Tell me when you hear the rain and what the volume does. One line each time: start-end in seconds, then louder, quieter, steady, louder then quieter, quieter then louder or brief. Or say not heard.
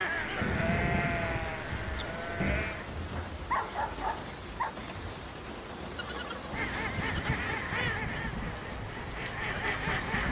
0.0-10.2 steady.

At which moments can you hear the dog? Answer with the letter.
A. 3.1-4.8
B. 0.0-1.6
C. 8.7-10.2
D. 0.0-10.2
A.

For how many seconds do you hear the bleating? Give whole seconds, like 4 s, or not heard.
4 s.